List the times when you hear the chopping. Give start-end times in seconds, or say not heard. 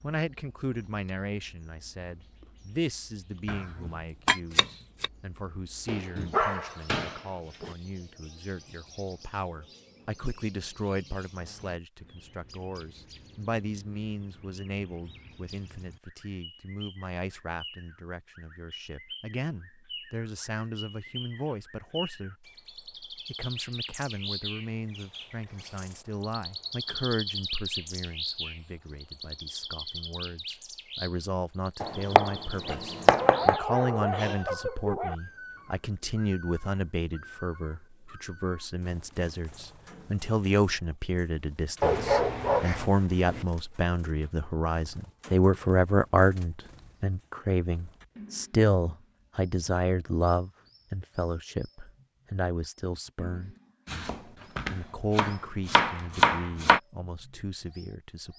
3.5-5.1, 31.8-33.6, 53.9-56.8.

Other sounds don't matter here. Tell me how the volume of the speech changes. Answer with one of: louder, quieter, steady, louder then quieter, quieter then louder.
louder.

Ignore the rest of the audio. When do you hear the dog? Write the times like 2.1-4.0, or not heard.
5.8-7.7, 33.1-35.1, 41.8-43.5.